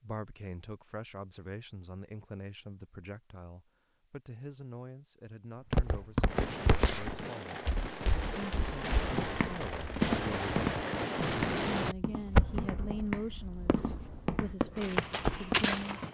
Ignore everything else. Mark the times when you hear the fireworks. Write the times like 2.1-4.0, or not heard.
6.2-16.0.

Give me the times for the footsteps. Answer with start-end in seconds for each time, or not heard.
5.7-16.0.